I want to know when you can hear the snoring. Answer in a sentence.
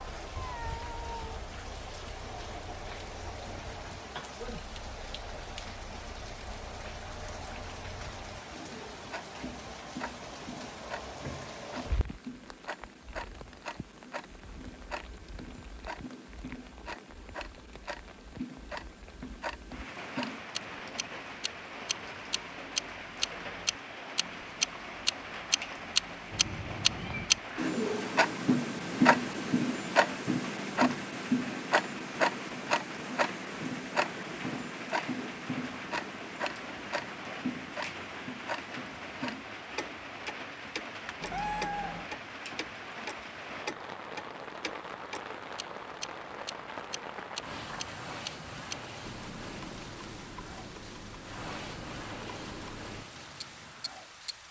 The snoring can't be heard in this clip.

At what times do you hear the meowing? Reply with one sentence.
You can hear the meowing from 0.3 to 1.4 s, from 26.3 to 27.7 s and from 41.2 to 42.1 s.